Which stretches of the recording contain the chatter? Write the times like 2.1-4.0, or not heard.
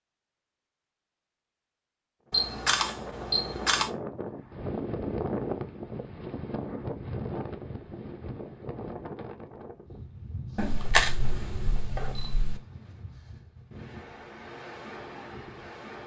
not heard.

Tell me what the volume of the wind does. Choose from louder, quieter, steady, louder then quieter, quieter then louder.
quieter.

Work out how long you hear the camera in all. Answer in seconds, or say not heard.
4 s.